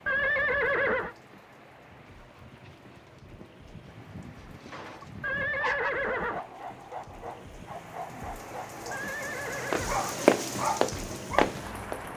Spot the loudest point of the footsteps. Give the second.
10 s.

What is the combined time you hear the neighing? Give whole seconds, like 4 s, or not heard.
4 s.